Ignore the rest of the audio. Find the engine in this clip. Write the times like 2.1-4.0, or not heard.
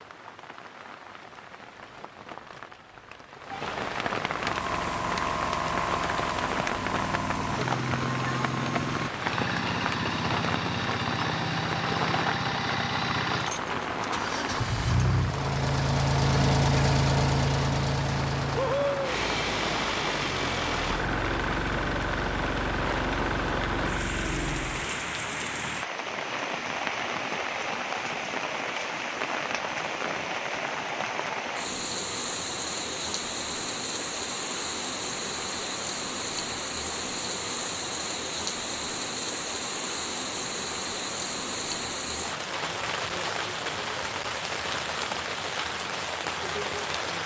4.4-25.1.